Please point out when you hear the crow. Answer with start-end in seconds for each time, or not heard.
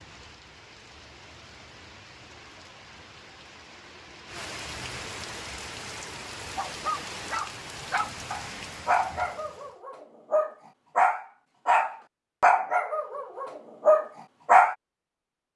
not heard.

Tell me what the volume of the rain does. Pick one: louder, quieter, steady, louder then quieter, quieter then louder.
louder.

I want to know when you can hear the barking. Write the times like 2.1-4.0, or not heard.
6.5-14.8.